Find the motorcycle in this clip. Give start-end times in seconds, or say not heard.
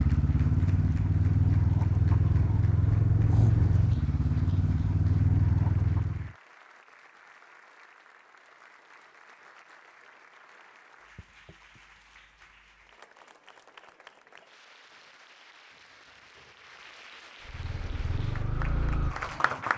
0.0-6.3, 17.4-19.7.